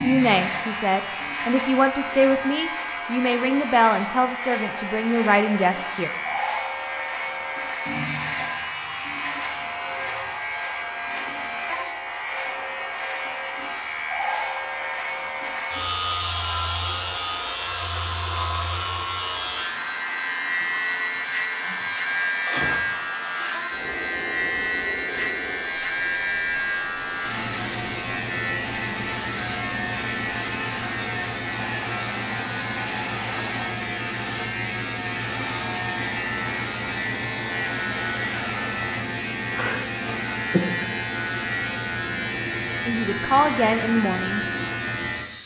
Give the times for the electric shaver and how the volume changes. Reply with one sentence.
The electric shaver can be heard from 0.0 to 45.4 s, at a steady volume.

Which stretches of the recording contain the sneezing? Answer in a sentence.
The sneezing can be heard from 21.1 to 22.9 s.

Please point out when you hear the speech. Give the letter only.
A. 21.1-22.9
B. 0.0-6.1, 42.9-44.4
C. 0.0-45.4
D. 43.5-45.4
B.